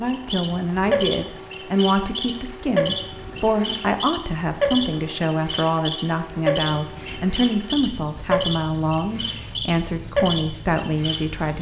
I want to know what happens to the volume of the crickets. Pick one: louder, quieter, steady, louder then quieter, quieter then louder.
steady.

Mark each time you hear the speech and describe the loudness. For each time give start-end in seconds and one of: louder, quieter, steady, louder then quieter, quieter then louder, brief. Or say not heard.
0.0-11.5 steady.